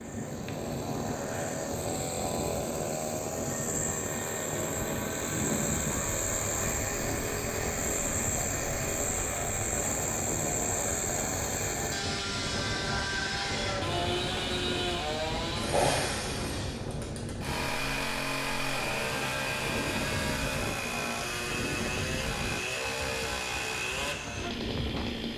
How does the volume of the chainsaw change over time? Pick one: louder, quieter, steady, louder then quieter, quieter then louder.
steady.